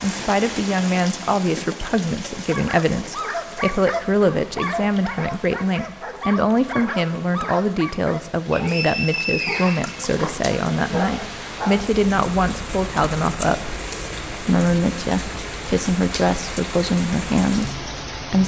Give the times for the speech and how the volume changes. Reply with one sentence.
The speech can be heard from 0.0 to 18.4 s, at a steady volume.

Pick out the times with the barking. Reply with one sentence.
You can hear the barking from 2.5 to 11.9 s.